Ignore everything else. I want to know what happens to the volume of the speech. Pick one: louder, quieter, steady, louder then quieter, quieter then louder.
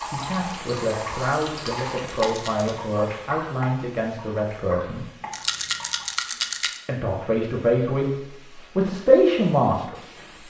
louder.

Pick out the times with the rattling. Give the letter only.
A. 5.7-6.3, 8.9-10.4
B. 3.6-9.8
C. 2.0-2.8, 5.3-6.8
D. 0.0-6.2
C.